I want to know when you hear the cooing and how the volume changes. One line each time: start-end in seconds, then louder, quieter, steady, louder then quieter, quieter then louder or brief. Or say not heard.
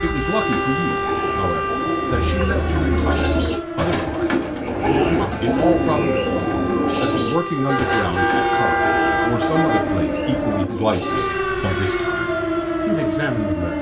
0.3-11.4 louder then quieter.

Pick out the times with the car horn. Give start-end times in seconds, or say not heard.
2.1-3.6, 7.7-9.9.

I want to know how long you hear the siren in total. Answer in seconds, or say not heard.
14 s.